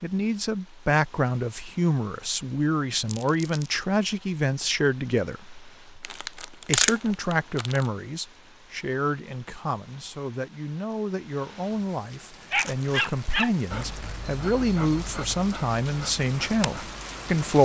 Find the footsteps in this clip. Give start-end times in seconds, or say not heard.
not heard.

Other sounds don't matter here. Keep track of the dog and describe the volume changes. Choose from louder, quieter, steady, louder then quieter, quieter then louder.
quieter.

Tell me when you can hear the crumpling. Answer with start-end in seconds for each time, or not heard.
2.9-3.7, 6.0-7.9, 12.5-14.2.